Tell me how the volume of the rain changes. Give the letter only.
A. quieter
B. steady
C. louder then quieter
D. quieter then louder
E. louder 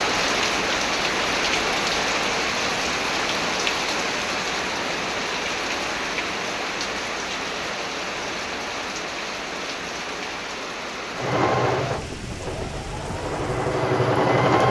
A.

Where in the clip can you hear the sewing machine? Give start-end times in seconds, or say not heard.
11.2-14.6.